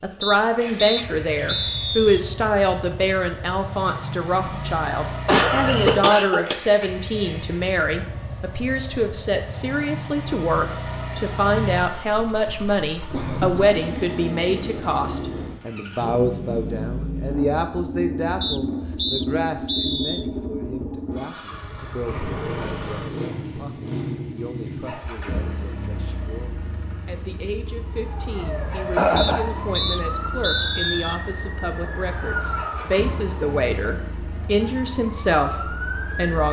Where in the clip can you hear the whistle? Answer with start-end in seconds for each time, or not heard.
0.2-2.2, 18.4-20.2, 29.1-31.1.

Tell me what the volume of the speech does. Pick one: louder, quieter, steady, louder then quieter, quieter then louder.
quieter then louder.